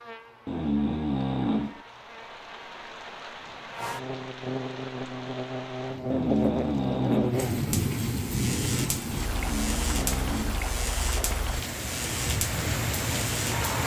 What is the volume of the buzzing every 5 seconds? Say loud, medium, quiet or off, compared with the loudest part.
medium, loud, loud.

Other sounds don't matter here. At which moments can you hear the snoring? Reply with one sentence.
The snoring can be heard from 0.5 to 1.8 s, from 6.1 to 7.5 s and from 9.3 to 10.7 s.